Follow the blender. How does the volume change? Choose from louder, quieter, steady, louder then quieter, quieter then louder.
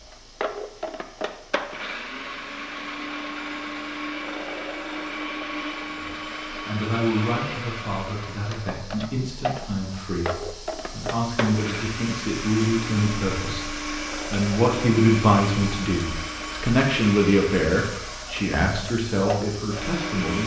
steady.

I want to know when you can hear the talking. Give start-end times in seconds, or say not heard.
5.9-20.4.